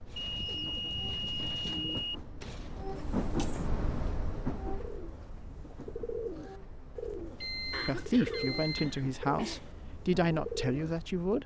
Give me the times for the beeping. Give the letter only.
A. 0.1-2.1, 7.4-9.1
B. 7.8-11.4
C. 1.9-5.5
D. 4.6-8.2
A.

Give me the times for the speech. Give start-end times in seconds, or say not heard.
7.8-11.4.